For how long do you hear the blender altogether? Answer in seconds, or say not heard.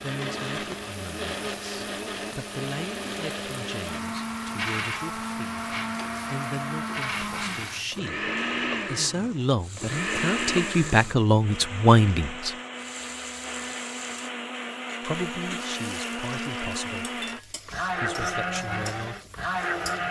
20 s.